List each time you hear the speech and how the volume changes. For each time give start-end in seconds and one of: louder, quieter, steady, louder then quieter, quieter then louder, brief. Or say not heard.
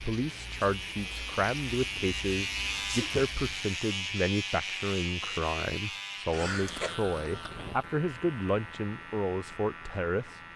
0.0-10.3 steady.